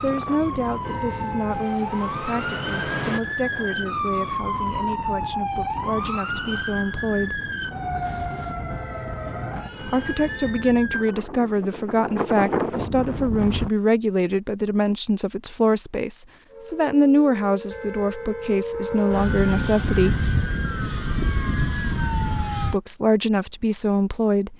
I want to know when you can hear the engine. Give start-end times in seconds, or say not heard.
1.5-3.2.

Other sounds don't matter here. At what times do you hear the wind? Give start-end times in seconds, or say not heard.
0.0-13.7.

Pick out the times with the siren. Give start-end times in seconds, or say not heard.
0.0-11.2, 16.4-22.8.